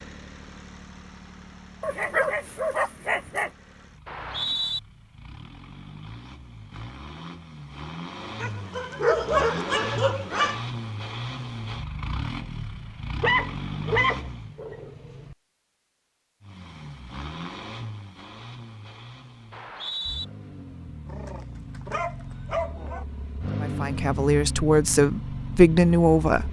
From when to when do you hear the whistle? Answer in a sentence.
You can hear the whistle from 4.0 to 4.8 s and from 19.5 to 20.2 s.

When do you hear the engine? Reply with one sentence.
The engine can be heard from 0.0 to 14.6 s and from 16.4 to 26.4 s.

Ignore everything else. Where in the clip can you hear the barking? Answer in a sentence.
You can hear the barking from 1.8 to 3.5 s, from 8.4 to 10.7 s, from 13.2 to 15.3 s and from 21.1 to 23.1 s.